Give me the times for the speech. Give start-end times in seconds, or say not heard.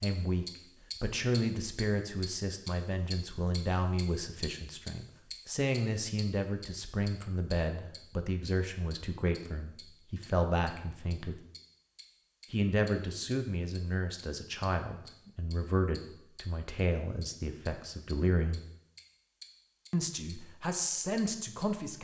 0.0-11.4, 12.5-18.6, 19.9-21.9.